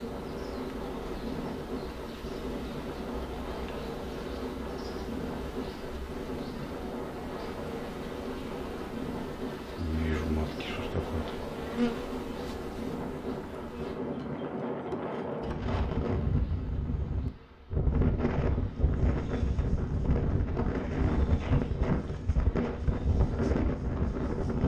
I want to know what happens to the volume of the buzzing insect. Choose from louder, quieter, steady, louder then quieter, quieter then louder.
louder then quieter.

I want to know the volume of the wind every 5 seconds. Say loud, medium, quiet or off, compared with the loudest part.
medium, medium, medium, loud, loud.